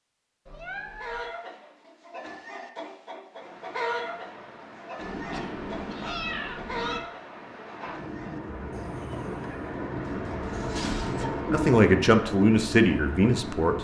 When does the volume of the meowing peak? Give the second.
6 s.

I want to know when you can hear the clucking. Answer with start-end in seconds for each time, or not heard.
0.9-9.8.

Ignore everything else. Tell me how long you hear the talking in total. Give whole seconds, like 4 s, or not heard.
2 s.